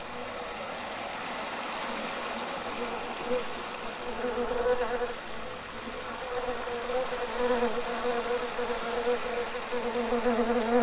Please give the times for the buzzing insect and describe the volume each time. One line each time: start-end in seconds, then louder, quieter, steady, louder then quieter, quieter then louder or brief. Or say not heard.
0.0-10.7 louder.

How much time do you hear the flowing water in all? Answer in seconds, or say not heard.
11 s.